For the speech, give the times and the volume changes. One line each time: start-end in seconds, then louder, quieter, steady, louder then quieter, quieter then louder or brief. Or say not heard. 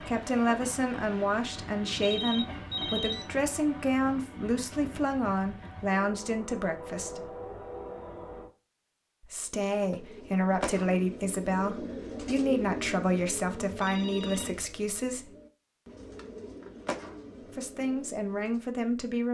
0.0-7.3 steady
9.2-15.3 steady
17.6-19.2 brief.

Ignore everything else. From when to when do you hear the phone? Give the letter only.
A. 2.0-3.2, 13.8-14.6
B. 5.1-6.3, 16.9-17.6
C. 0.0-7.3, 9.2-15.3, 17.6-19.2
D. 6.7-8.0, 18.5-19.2
A.